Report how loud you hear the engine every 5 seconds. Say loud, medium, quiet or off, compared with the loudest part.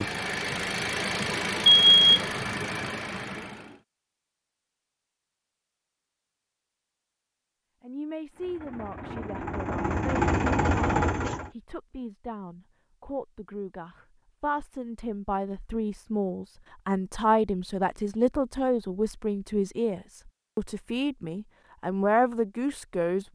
medium, medium, loud, off, off.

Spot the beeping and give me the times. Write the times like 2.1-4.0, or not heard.
1.7-2.2.